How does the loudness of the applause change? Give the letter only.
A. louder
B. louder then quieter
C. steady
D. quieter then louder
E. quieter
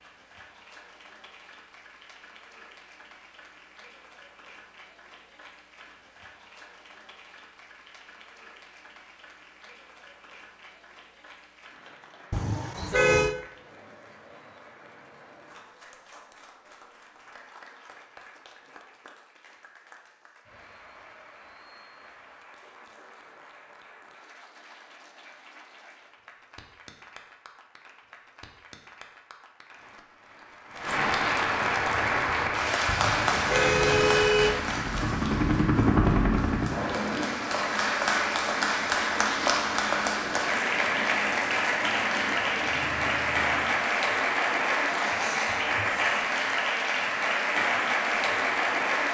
A.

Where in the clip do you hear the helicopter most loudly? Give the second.
36 s.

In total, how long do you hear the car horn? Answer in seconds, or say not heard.
3 s.